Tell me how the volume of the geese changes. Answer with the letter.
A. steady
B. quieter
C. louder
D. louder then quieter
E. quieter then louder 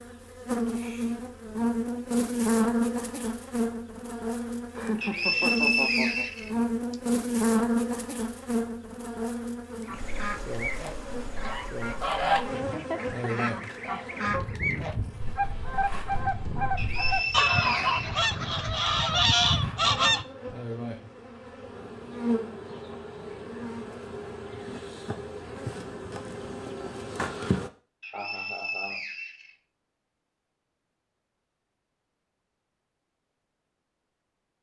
C.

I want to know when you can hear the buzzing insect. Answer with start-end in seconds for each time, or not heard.
0.0-27.7.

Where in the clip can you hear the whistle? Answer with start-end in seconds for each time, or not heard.
5.0-7.0, 16.8-18.2, 28.0-29.6.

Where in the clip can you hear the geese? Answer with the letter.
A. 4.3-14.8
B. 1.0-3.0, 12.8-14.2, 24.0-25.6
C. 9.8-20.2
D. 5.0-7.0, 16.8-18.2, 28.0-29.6
C.